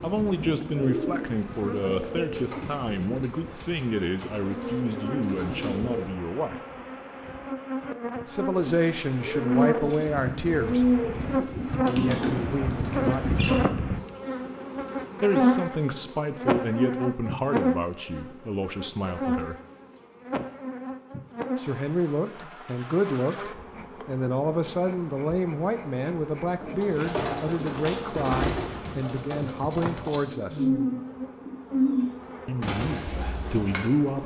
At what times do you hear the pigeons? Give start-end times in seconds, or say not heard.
0.0-6.1, 8.5-13.7, 26.6-33.9.